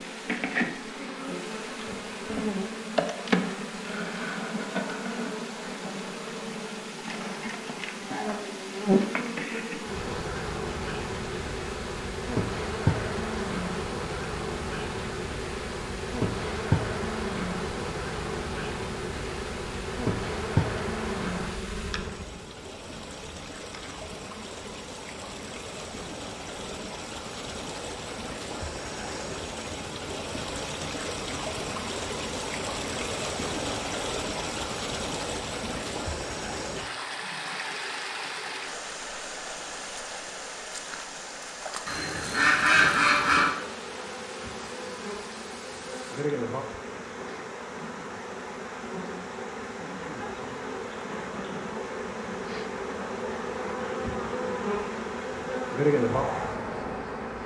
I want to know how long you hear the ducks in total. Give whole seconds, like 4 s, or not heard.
2 s.